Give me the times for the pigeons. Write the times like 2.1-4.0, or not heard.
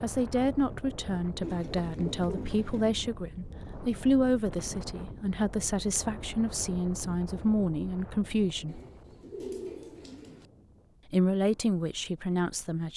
1.4-2.9, 8.7-10.4.